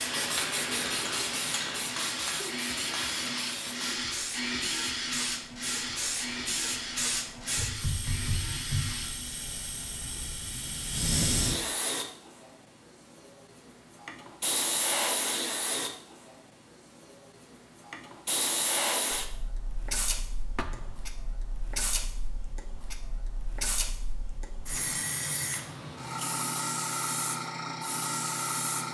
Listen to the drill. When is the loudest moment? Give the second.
5 s.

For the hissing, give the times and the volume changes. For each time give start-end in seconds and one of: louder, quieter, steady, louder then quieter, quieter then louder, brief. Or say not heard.
0.0-28.8 steady.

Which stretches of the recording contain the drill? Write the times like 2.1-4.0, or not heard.
0.0-10.3.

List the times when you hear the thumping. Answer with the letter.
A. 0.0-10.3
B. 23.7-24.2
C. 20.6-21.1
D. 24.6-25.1
C.